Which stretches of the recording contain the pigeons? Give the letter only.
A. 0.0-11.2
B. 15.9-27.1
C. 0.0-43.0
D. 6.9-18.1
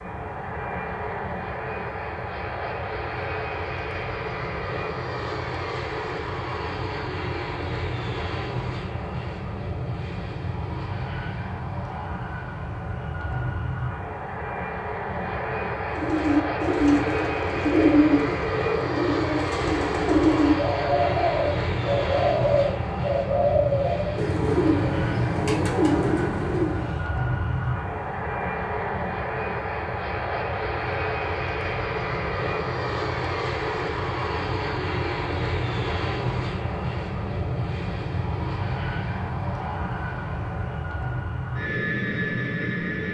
B.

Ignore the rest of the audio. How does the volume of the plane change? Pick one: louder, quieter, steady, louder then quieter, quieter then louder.
steady.